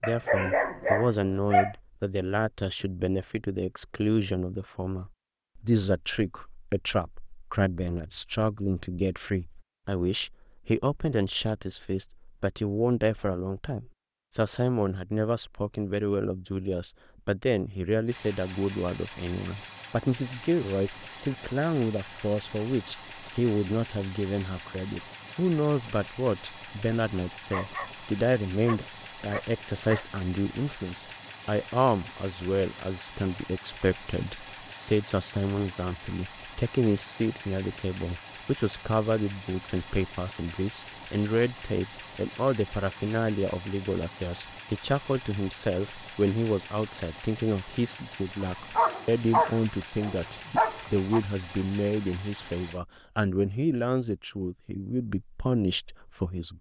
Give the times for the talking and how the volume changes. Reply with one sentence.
The talking can be heard from 0.0 to 56.5 s, at a steady volume.